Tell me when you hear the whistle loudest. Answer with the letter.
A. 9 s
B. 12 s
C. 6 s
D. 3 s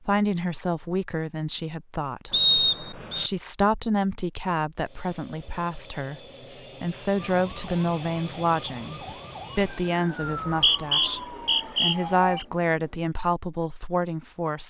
D.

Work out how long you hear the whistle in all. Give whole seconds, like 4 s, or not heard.
3 s.